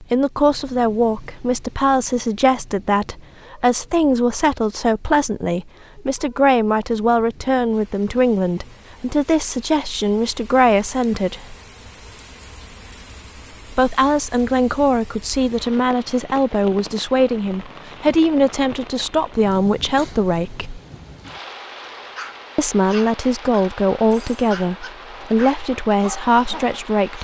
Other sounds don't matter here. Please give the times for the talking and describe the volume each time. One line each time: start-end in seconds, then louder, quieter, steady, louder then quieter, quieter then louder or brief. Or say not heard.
0.0-11.6 steady
13.7-20.8 steady
22.6-27.1 steady.